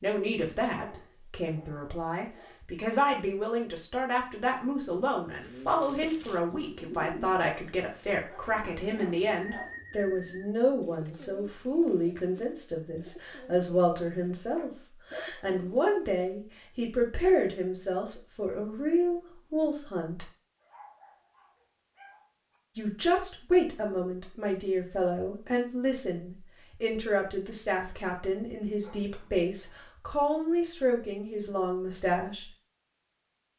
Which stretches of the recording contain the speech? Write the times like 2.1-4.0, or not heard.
0.0-20.2, 22.8-32.5.